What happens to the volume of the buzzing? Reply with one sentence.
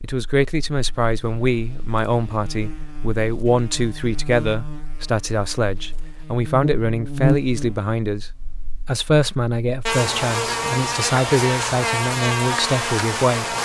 The volume of the buzzing goes up.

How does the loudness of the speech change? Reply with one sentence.
The loudness of the speech stays about the same.